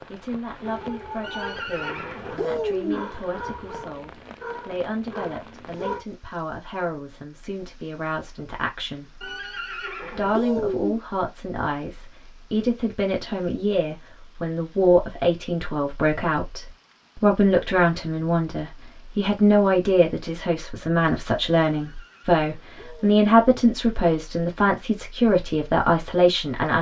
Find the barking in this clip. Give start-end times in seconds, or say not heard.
0.6-6.0.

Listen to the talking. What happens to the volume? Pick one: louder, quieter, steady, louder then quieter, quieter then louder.
louder.